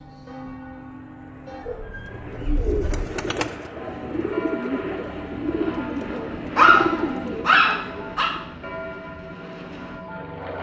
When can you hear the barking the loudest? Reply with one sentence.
The volume of the barking peaks at 7 seconds.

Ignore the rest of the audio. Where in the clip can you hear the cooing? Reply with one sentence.
You can hear the cooing from 2.1 to 8.4 s.